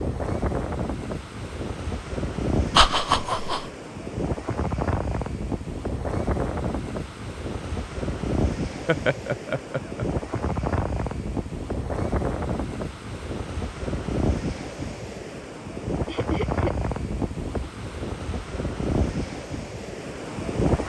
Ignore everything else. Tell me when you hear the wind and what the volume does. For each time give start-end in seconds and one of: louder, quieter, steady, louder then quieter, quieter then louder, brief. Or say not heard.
0.0-20.8 steady.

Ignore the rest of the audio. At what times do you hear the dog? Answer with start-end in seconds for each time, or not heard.
not heard.